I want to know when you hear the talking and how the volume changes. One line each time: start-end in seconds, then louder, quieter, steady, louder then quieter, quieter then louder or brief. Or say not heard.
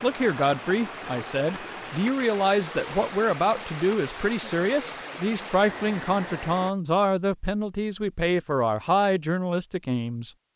0.0-10.3 steady.